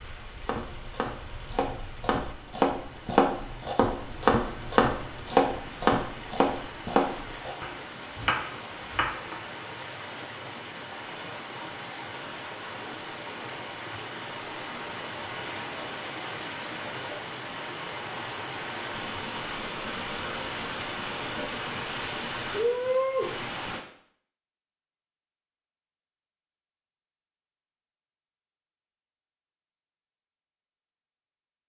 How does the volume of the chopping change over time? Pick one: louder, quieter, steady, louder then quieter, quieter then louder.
louder then quieter.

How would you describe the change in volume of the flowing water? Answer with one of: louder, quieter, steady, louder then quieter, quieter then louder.
louder.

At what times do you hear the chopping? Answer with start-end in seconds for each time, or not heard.
0.5-9.4.